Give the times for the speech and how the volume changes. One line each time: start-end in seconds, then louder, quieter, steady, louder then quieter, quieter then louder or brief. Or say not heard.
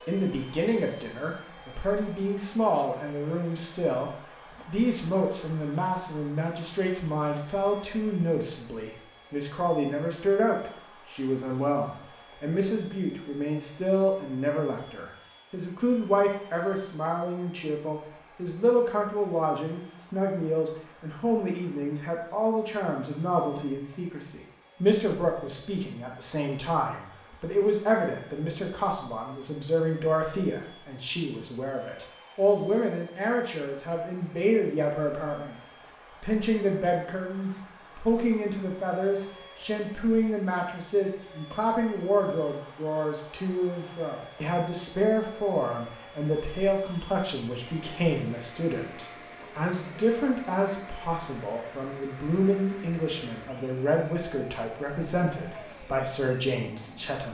0.1-57.2 steady.